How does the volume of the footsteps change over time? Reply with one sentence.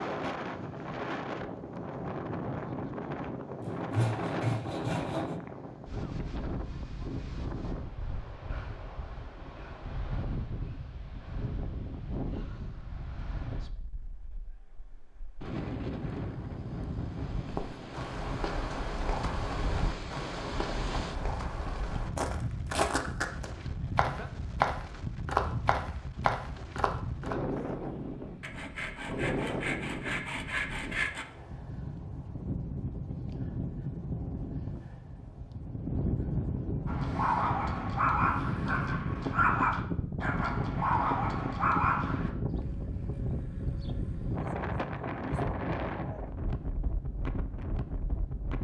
The loudness of the footsteps goes up.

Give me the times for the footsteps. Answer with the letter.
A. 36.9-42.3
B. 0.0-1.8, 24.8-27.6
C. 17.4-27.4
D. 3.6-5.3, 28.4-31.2
C.